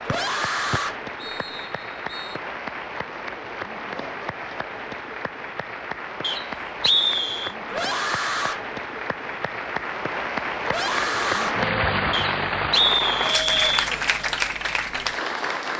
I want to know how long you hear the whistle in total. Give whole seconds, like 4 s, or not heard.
5 s.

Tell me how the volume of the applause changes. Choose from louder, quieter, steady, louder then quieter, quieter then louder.
louder.